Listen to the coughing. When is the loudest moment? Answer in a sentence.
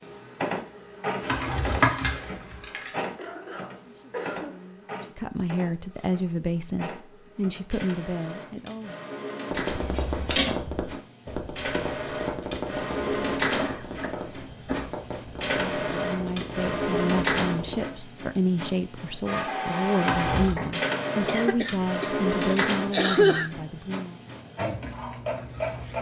The volume of the coughing peaks at 23 seconds.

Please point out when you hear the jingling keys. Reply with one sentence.
The jingling keys can be heard from 1.2 to 3.0 s, from 9.8 to 10.6 s and from 20.0 to 20.6 s.